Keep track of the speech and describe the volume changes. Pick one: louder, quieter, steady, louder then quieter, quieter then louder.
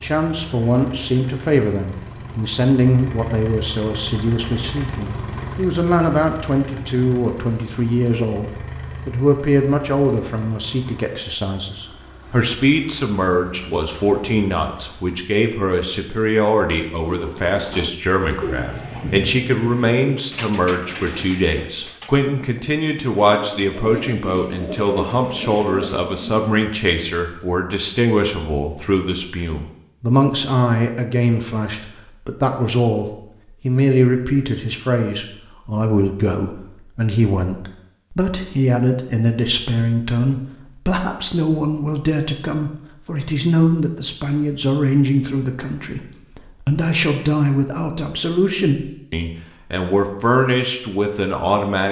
steady.